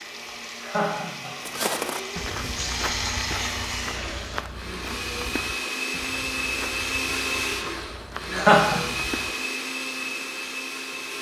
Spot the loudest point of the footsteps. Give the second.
2 s.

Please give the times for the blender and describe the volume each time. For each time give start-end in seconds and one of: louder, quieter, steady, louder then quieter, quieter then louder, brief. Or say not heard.
0.0-11.1 louder.